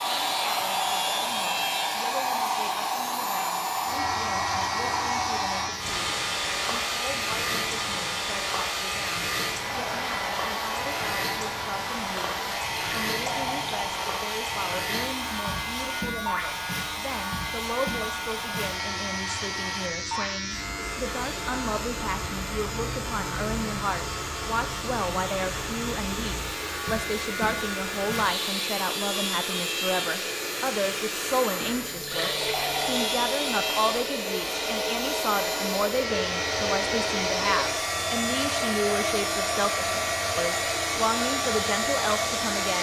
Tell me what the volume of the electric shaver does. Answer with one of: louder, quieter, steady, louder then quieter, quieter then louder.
steady.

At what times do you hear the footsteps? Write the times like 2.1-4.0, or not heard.
not heard.